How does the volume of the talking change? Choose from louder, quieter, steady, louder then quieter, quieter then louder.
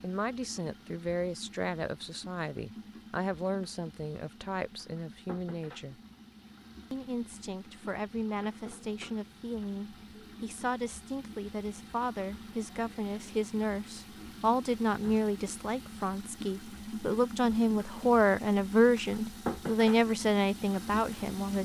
louder.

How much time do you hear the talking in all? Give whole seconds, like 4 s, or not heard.
21 s.